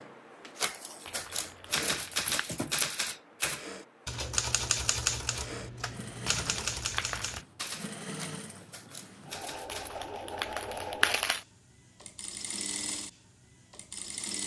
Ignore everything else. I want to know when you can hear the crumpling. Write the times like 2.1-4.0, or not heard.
1.1-2.4, 6.2-7.5, 9.7-11.4.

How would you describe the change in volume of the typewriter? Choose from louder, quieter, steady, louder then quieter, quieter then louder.
quieter.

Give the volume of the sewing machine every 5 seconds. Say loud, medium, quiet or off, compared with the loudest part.
medium, loud, loud.